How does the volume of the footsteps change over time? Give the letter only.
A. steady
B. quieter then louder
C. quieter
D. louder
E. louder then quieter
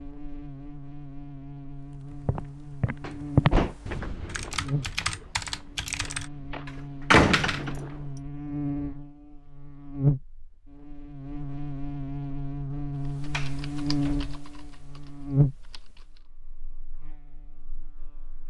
C.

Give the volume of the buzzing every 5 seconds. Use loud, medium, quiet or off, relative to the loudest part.
medium, medium, loud, loud.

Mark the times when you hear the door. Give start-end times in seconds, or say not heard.
3.0-3.8, 7.1-7.8, 13.3-14.3.